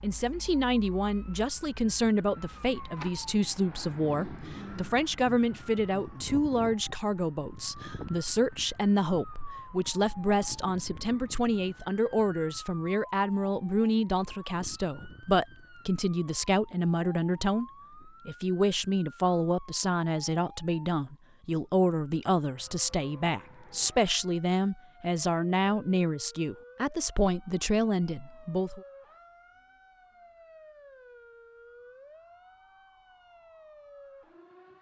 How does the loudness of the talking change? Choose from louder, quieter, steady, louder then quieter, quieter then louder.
steady.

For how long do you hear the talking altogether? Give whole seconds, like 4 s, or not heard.
29 s.